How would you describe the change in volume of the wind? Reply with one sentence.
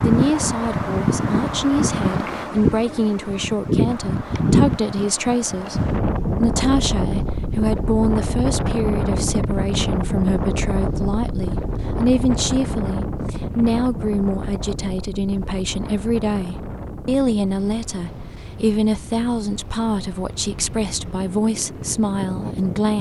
The volume of the wind goes down.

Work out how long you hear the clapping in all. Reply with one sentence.
The clapping can't be heard in this clip.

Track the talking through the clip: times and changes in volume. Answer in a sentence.
You can hear the talking from 0.0 to 22.9 s, at a steady volume.